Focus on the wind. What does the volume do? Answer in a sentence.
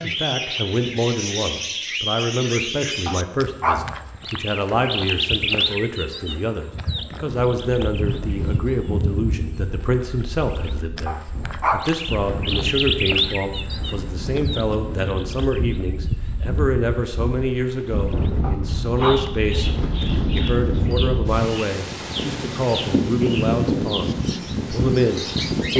The volume of the wind goes up.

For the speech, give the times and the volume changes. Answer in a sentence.
The speech can be heard from 0.0 to 25.7 s, at a steady volume.